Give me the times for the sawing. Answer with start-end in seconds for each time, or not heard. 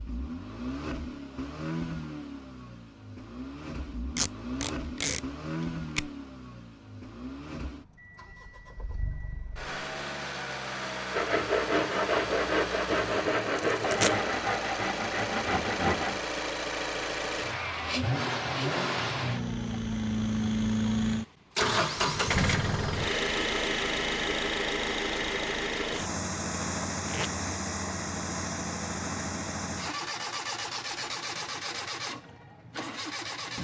11.1-16.2.